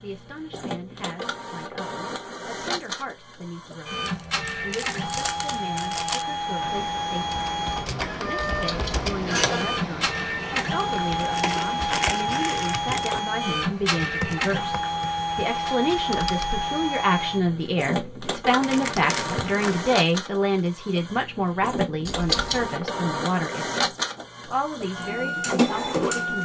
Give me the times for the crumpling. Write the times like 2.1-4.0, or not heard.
4.0-6.2, 11.2-13.2, 18.6-19.9.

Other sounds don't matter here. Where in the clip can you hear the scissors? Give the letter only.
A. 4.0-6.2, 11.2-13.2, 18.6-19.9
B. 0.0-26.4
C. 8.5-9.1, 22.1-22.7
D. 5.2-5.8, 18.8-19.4
C.